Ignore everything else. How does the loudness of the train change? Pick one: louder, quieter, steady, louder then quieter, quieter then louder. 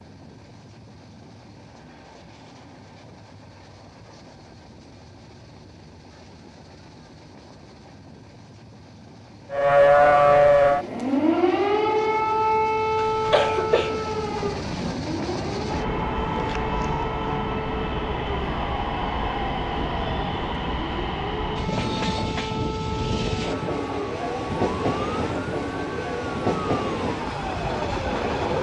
louder.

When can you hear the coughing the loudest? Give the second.
13 s.